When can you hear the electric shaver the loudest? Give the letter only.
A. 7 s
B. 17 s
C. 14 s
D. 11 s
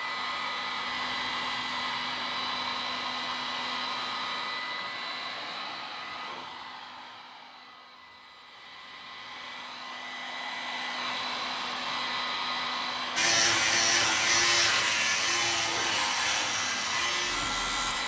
C.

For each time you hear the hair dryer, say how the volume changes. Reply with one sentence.
The hair dryer can be heard from 0.0 to 18.0 s, getting quieter then louder.